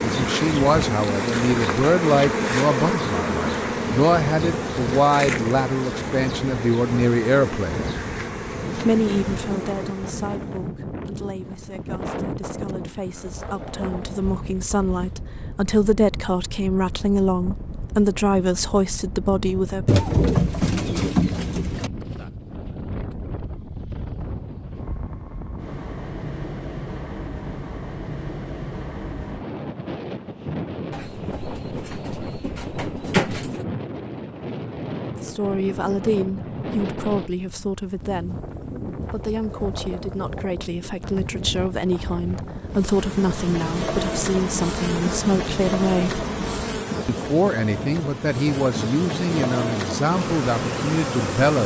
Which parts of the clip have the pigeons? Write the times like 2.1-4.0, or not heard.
19.9-21.9, 30.9-33.6.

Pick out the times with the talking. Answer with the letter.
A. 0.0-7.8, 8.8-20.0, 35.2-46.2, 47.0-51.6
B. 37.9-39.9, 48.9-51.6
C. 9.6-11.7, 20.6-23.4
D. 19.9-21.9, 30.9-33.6
A.